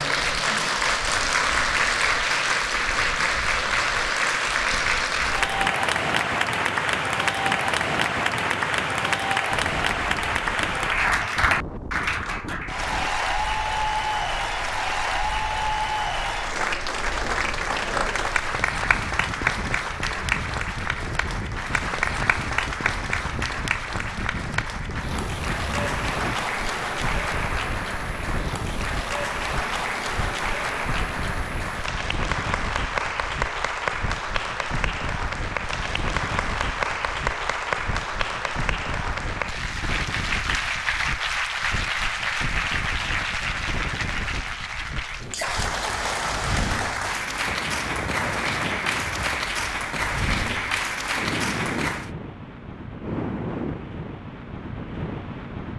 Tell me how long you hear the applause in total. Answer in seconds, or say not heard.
52 s.